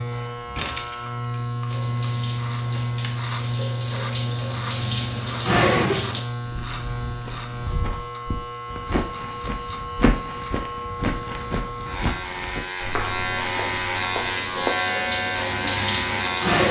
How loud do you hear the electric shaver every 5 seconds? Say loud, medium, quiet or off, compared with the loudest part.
loud, medium, loud, loud.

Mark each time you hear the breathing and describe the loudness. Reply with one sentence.
You can't hear the breathing here.